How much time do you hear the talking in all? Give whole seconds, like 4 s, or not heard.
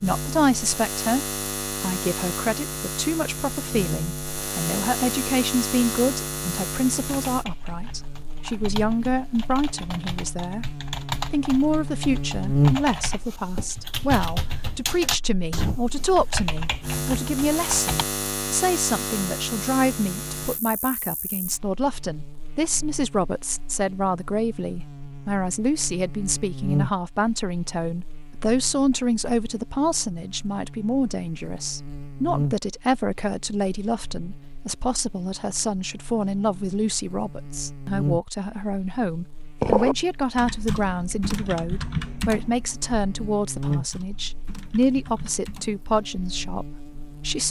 47 s.